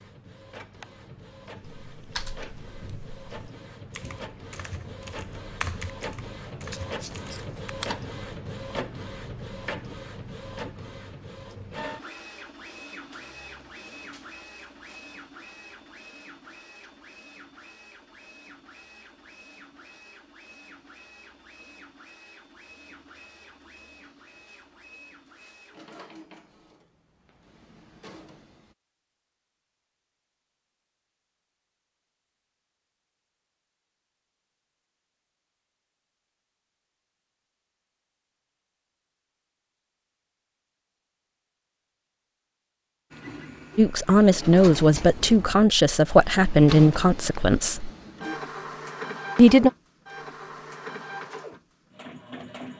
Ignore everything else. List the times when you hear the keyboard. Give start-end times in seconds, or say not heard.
1.8-7.7.